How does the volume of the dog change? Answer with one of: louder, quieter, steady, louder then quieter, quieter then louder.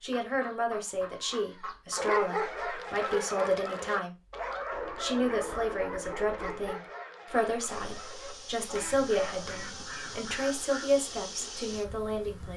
quieter.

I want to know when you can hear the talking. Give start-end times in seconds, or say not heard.
0.0-4.2, 5.0-12.5.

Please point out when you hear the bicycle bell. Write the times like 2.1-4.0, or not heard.
not heard.